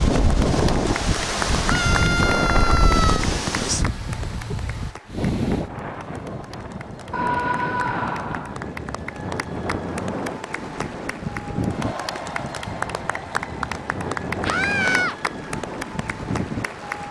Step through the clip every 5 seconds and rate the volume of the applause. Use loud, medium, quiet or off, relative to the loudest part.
loud, medium, loud, loud.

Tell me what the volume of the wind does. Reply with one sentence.
The volume of the wind goes down.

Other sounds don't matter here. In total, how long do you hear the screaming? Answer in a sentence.
You can hear the screaming for 4 seconds altogether.